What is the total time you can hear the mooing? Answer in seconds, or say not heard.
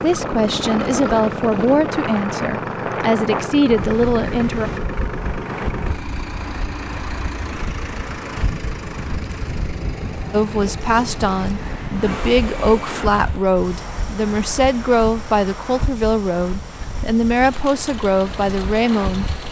not heard.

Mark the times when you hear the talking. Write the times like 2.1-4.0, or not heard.
0.0-4.7, 10.3-19.2.